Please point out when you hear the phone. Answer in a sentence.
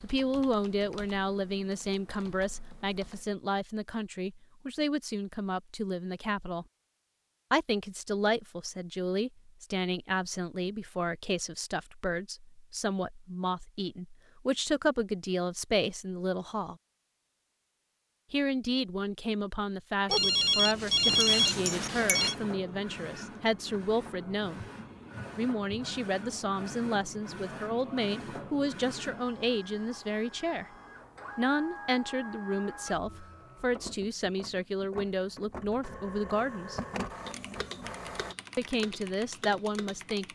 You can hear the phone from 20.1 to 22.4 s.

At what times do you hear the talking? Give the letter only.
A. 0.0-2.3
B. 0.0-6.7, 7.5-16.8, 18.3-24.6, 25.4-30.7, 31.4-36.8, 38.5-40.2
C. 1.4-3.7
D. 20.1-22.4
B.